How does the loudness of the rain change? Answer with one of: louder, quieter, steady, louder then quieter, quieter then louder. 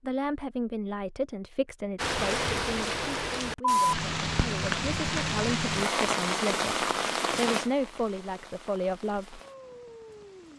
quieter.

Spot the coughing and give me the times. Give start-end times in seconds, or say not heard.
not heard.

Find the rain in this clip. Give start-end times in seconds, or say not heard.
1.9-10.5.